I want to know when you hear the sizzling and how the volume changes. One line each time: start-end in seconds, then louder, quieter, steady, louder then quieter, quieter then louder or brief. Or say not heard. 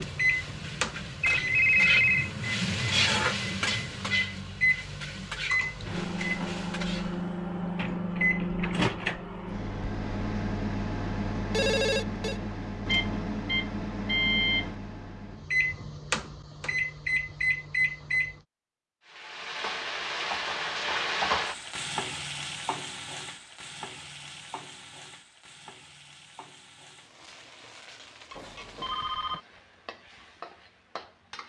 0.0-7.2 louder then quieter
19.1-31.4 quieter.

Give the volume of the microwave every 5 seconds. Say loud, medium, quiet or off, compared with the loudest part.
loud, loud, loud, loud, off, off, off.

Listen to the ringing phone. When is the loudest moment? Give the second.
2 s.